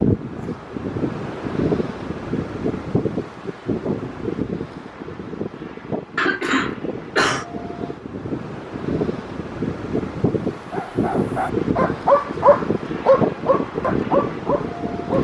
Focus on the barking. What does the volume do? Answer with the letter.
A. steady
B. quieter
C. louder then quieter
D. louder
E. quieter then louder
C.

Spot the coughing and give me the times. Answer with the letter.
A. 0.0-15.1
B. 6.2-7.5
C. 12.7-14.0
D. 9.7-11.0
B.